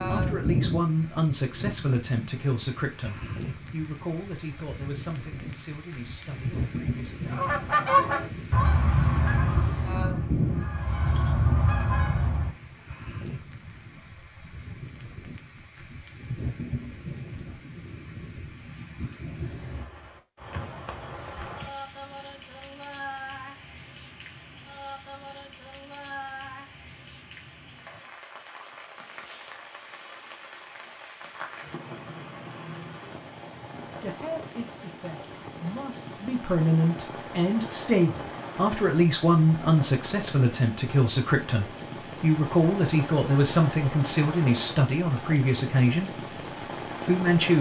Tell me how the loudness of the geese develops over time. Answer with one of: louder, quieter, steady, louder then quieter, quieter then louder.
quieter then louder.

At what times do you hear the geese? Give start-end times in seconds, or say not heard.
7.3-12.6.